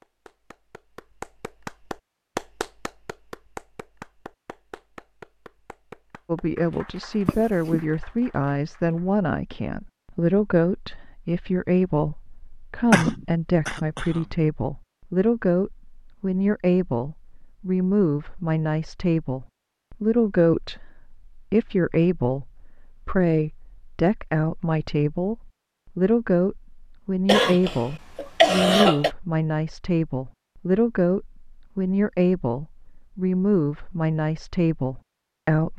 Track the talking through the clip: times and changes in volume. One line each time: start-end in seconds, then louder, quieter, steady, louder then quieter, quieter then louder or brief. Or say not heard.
6.2-35.7 steady.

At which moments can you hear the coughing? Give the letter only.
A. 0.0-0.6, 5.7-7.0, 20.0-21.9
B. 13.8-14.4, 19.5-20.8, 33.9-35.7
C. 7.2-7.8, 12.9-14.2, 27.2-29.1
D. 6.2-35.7
C.